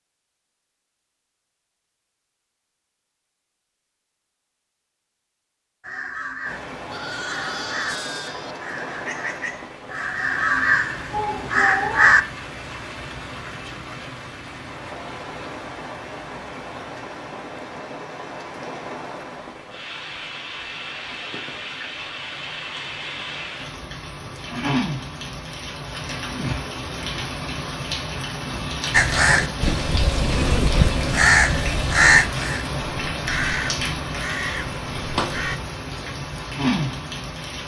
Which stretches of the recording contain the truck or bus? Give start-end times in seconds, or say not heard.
not heard.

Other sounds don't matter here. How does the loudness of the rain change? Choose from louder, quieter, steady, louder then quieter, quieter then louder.
louder.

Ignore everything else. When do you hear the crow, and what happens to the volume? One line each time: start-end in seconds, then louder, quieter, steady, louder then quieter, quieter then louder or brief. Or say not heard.
5.8-12.2 louder
28.9-35.6 louder then quieter.